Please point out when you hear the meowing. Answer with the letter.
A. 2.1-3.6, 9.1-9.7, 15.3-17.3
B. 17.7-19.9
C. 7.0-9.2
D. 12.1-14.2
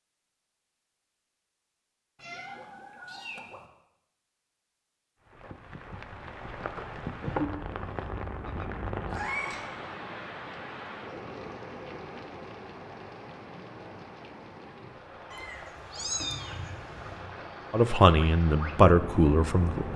A.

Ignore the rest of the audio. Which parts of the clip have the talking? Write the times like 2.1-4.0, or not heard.
17.7-19.9.